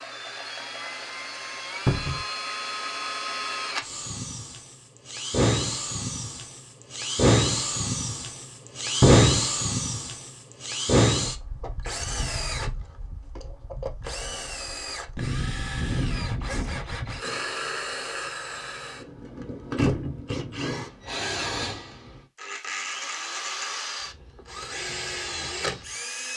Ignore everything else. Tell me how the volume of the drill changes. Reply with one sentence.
The loudness of the drill goes up, then down.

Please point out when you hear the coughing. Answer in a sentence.
You can hear the coughing from 16.4 to 17.6 s.